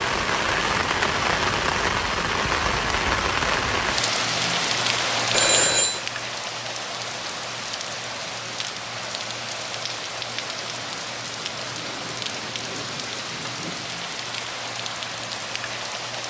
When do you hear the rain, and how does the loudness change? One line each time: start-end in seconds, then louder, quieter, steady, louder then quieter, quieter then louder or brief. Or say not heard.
0.0-16.2 quieter.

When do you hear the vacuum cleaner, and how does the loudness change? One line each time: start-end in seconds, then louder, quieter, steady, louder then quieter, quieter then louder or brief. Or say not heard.
not heard.